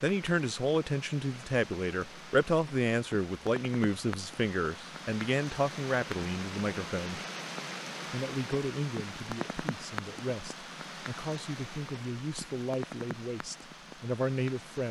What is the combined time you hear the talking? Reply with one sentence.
You can hear the talking for 14 seconds altogether.